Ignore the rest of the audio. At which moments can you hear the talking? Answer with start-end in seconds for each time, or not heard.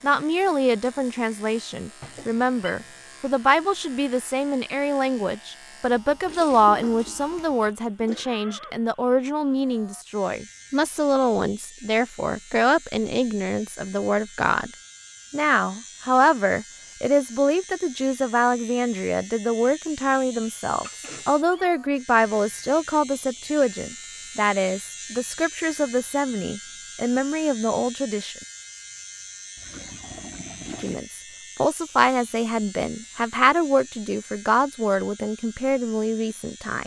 0.0-14.7, 15.3-28.4, 30.8-36.8.